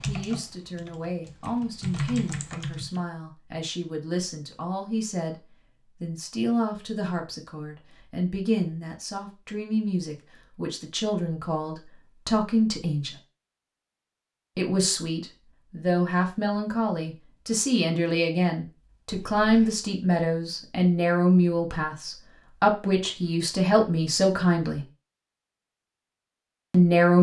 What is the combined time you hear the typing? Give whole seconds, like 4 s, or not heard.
3 s.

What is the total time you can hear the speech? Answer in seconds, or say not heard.
24 s.